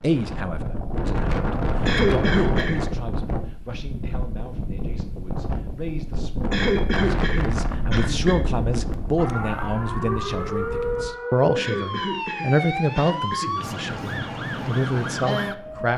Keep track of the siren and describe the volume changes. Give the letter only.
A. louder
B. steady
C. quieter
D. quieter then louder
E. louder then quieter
B.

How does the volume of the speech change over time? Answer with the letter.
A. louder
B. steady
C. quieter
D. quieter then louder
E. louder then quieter
D.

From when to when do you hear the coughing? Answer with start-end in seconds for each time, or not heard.
1.9-2.9, 6.5-8.4, 11.6-13.5.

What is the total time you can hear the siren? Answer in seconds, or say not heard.
7 s.